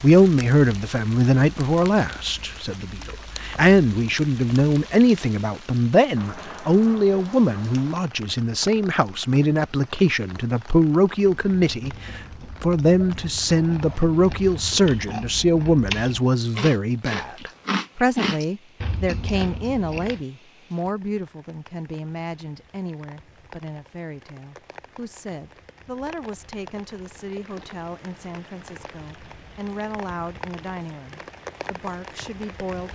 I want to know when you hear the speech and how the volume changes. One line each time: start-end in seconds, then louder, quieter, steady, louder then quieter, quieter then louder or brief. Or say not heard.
0.0-32.9 quieter.